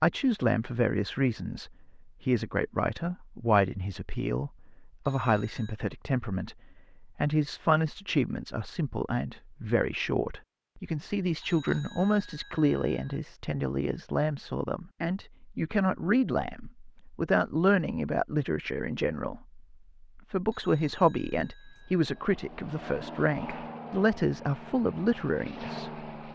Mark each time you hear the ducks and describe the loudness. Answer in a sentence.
You can't hear the ducks here.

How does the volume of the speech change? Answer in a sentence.
The loudness of the speech stays about the same.